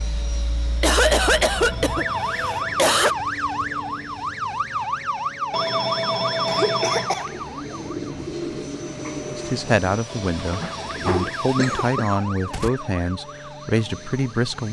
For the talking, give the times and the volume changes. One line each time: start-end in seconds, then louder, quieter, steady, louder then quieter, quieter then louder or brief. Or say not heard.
9.3-14.6 steady.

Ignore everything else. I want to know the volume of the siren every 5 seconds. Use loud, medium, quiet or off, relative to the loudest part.
loud, loud, medium.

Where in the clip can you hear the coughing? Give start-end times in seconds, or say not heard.
0.8-3.1, 6.5-7.3, 11.6-12.7.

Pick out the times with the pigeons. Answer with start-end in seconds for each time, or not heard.
7.2-11.3.